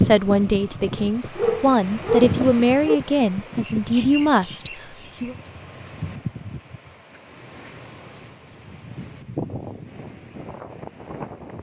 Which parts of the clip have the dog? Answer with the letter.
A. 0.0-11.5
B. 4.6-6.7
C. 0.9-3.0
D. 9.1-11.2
C.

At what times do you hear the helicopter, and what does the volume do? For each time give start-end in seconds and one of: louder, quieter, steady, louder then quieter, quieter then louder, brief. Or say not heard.
not heard.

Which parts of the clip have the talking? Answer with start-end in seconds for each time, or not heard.
0.0-5.3.